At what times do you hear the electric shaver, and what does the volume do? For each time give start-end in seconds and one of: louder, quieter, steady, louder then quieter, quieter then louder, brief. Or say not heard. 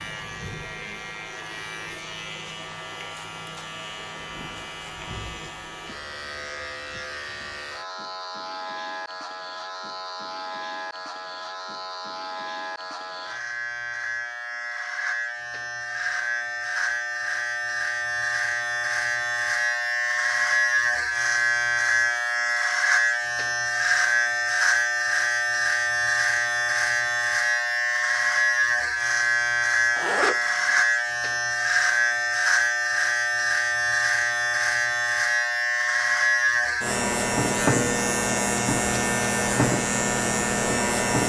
0.0-41.2 louder.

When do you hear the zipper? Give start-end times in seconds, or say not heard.
29.9-30.4.